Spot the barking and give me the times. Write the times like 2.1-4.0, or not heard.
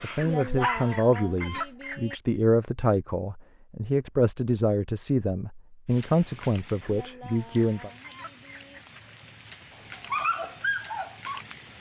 0.0-1.7, 9.7-11.7.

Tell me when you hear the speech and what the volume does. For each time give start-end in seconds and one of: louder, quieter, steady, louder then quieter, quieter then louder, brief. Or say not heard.
0.0-7.9 steady.